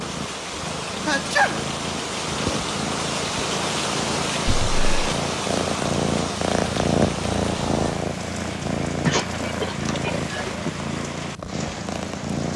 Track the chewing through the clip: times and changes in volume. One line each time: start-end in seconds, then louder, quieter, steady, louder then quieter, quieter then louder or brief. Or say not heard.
not heard.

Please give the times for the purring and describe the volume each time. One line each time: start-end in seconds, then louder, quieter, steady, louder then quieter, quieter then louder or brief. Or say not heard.
0.0-12.5 louder then quieter.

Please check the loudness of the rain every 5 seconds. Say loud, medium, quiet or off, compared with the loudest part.
loud, loud, medium.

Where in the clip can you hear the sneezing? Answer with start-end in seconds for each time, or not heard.
0.8-1.6, 4.5-5.2, 9.1-10.7.